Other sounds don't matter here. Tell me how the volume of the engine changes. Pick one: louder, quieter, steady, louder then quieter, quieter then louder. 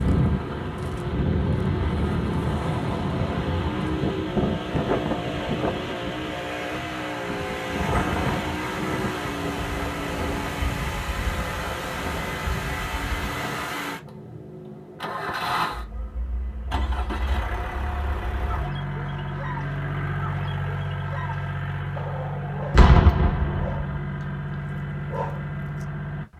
steady.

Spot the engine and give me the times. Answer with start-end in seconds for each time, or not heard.
0.0-26.3.